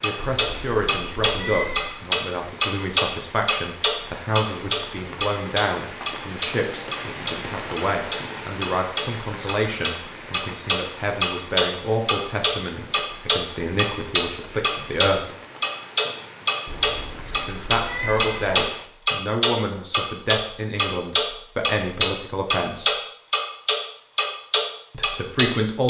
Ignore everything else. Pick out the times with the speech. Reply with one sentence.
You can hear the speech from 0.0 to 15.2 s, from 17.4 to 22.9 s and from 24.9 to 25.8 s.